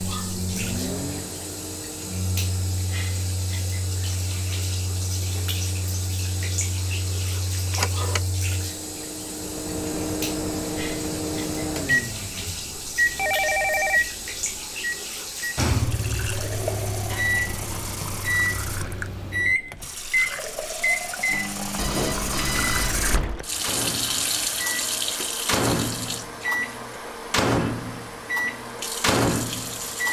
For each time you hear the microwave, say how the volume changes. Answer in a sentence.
You can hear the microwave from 0.0 to 30.0 s, getting louder.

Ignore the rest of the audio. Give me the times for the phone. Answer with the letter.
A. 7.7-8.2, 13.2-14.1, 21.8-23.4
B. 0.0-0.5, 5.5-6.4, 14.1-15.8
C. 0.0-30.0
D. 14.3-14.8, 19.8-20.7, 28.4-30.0
A.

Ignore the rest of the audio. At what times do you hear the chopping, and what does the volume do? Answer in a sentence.
You can't hear the chopping here.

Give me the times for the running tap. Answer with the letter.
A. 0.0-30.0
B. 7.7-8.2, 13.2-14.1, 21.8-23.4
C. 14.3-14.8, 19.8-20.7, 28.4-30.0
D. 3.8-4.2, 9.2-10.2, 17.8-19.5
A.